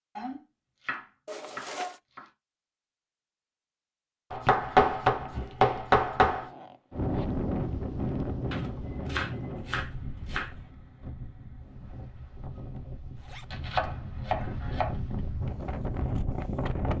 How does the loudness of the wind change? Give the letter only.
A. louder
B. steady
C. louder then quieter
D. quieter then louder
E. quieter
D.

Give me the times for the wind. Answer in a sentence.
You can hear the wind from 6.9 to 16.9 s.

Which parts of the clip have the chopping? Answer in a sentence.
The chopping can be heard from 0.1 to 2.2 s, from 4.3 to 6.5 s, from 8.5 to 10.5 s and from 13.5 to 15.0 s.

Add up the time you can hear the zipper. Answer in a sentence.
You can hear the zipper for 3 seconds altogether.